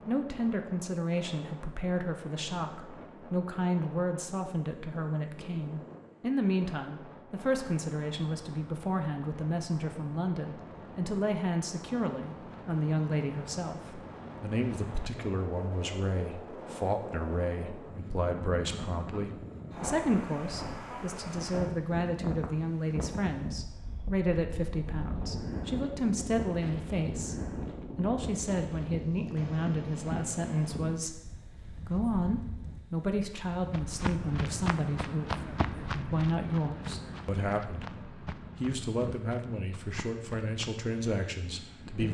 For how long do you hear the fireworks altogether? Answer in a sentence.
The fireworks can't be heard in this clip.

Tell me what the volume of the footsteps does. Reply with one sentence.
The volume of the footsteps goes down.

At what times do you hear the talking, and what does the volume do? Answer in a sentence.
You can hear the talking from 0.1 to 42.0 s, at a steady volume.